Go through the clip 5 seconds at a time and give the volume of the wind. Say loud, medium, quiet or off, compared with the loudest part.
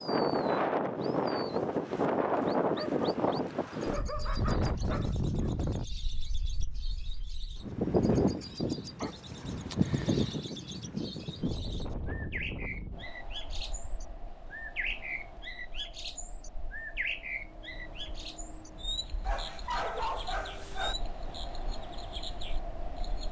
loud, loud, medium, quiet, quiet.